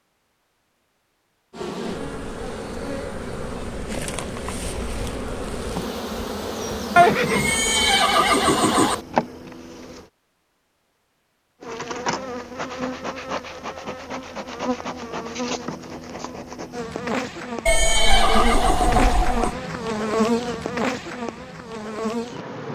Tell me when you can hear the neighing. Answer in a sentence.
The neighing can be heard from 7.0 to 8.9 s and from 17.6 to 19.6 s.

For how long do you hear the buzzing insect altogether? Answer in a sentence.
You can hear the buzzing insect for 20 seconds altogether.